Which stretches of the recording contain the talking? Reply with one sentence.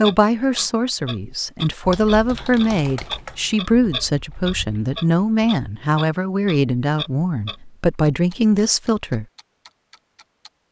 You can hear the talking from 0.0 to 9.2 s.